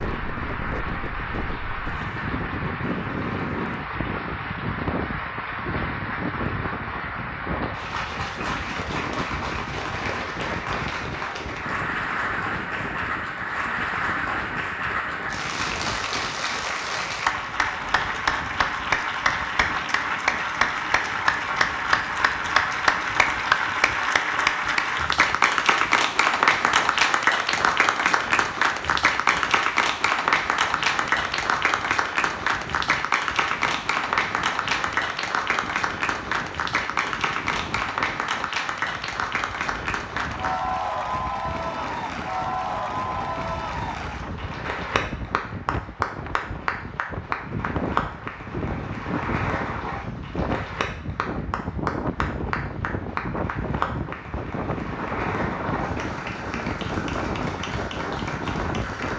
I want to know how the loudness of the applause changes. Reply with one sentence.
The loudness of the applause goes up, then down.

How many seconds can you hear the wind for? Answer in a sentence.
You can hear the wind for 59 seconds altogether.